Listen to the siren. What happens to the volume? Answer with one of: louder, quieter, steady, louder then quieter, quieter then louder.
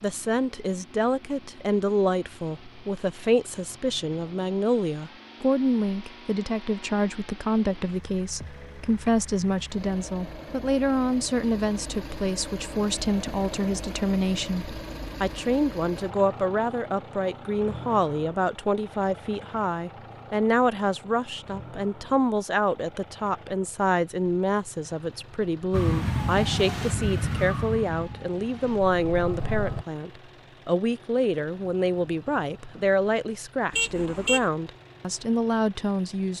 quieter then louder.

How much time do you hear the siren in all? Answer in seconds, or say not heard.
4 s.